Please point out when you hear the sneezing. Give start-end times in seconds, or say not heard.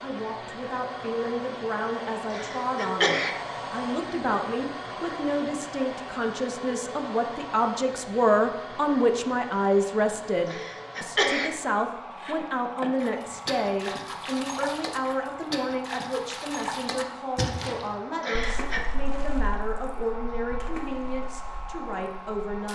2.3-3.4, 10.4-11.5, 18.2-18.9.